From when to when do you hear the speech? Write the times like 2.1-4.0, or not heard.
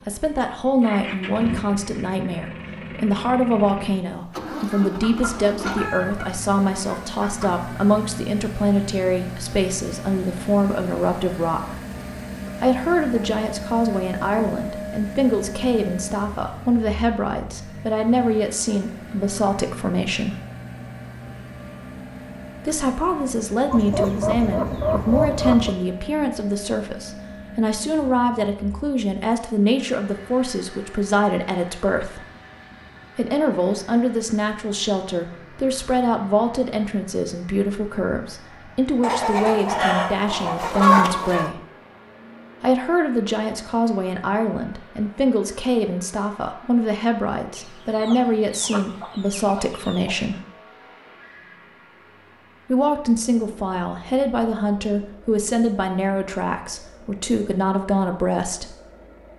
0.1-11.8, 12.6-20.4, 22.6-32.2, 33.1-41.6, 42.6-50.4, 52.6-58.8.